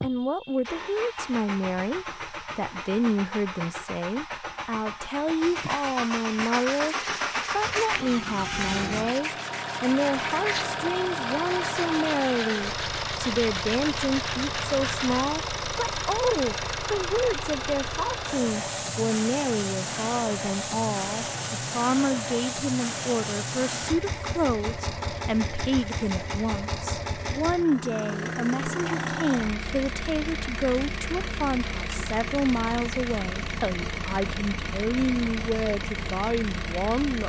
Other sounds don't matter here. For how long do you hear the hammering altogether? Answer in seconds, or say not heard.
not heard.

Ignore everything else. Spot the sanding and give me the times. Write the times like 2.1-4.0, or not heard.
6.4-15.3.